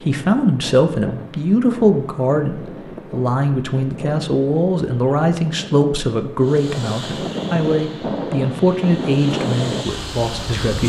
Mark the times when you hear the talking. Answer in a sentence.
You can hear the talking from 0.0 to 10.8 s.